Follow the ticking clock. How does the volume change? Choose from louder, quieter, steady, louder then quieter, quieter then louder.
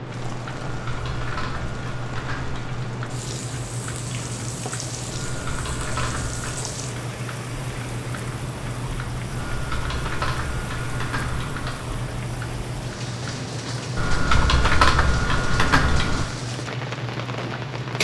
steady.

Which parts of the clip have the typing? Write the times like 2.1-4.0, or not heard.
0.7-2.9, 5.2-6.7, 9.3-11.8, 13.9-16.3.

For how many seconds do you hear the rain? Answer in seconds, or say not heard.
18 s.